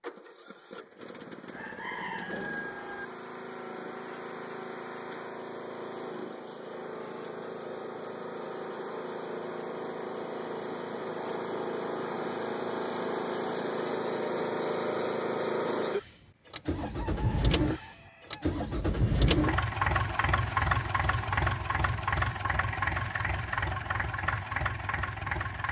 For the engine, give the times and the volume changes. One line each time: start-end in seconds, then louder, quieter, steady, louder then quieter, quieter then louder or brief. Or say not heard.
0.0-25.6 louder.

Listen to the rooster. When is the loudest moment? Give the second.
2 s.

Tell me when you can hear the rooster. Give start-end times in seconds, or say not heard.
1.5-3.0, 16.8-18.4.